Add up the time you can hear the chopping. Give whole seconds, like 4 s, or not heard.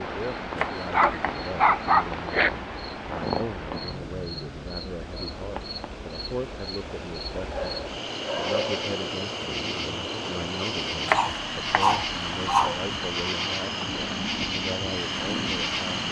2 s.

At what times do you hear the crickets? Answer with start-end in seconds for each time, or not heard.
0.0-16.0.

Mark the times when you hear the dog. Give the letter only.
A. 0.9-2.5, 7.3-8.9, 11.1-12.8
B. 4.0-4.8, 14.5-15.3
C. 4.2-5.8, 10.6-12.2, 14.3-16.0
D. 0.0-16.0
A.